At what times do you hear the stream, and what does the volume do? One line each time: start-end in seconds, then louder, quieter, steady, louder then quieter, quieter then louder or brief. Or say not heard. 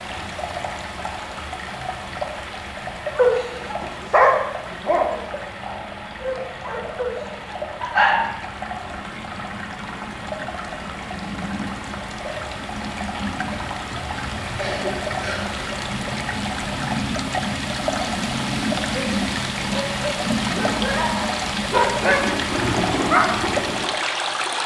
0.0-24.6 louder.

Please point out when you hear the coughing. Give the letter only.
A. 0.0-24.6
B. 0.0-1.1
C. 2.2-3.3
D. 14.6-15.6
D.